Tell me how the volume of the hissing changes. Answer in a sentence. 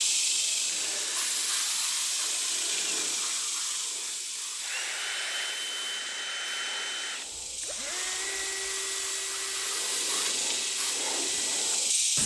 The volume of the hissing goes down, then up.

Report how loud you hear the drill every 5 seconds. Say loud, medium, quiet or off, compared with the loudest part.
medium, loud, medium.